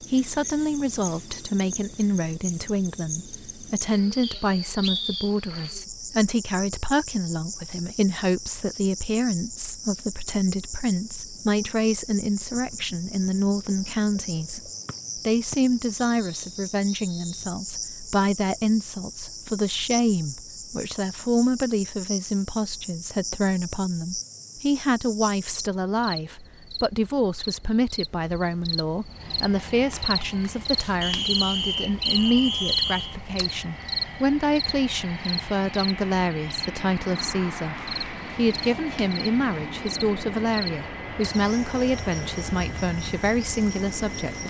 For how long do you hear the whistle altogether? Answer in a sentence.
The whistle can be heard for 6 seconds in total.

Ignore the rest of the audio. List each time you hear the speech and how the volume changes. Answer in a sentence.
The speech can be heard from 0.1 to 44.4 s, at a steady volume.